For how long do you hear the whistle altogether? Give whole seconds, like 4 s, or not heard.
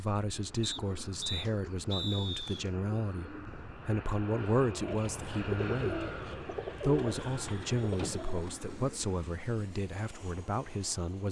2 s.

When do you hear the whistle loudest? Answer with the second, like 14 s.
2 s.